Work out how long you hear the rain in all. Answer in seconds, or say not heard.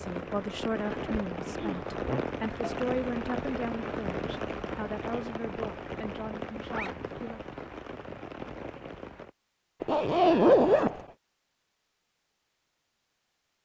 9 s.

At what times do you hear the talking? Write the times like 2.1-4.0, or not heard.
0.0-7.5.